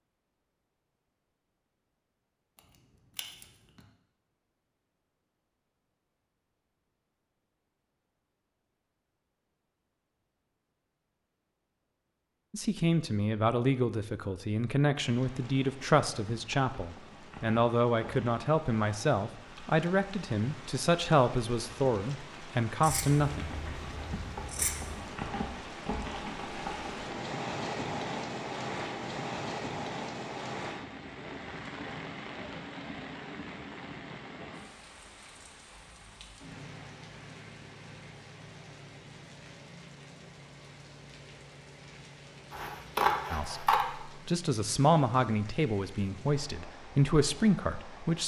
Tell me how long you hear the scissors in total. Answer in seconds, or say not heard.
4 s.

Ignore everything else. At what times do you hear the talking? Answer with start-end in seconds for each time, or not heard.
12.5-23.4, 43.3-48.2.